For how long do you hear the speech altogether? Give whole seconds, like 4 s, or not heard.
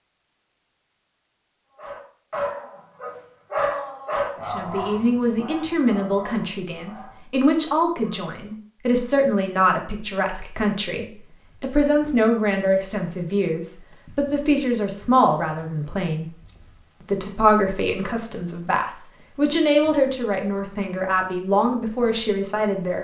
18 s.